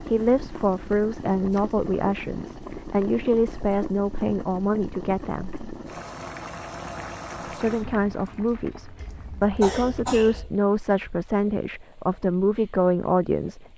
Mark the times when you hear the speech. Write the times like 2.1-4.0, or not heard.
0.1-5.6, 7.5-13.7.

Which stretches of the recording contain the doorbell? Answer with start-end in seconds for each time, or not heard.
not heard.